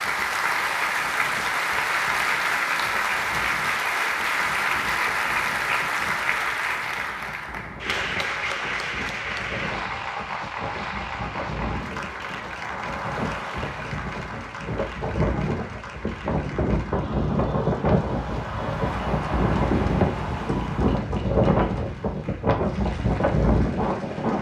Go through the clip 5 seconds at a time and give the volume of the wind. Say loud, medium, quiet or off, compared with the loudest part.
quiet, quiet, medium, loud, loud.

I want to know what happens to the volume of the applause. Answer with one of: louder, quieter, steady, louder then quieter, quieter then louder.
quieter.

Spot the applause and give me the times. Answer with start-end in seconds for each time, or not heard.
0.0-24.3.